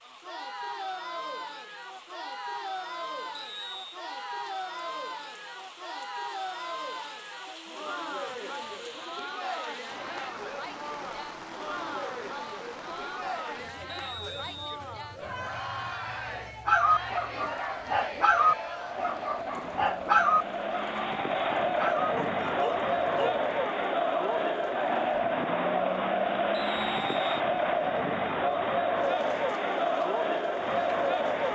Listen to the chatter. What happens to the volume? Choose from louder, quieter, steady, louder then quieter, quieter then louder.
louder.